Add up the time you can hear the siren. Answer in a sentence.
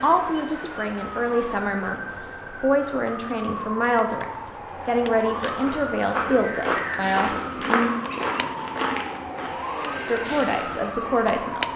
The siren can be heard for 12 seconds in total.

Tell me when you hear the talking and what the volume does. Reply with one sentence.
The talking can be heard from 0.0 to 7.9 s, at a steady volume; and briefly from 10.0 to 11.7 s.